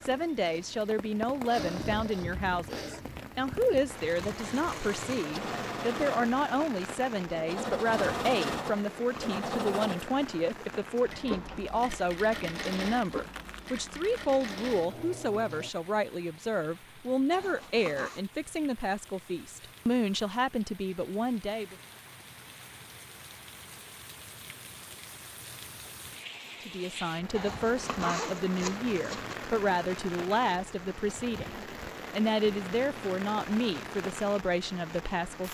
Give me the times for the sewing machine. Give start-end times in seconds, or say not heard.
0.0-15.7.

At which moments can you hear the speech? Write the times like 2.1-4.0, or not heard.
0.0-21.8, 26.6-35.4.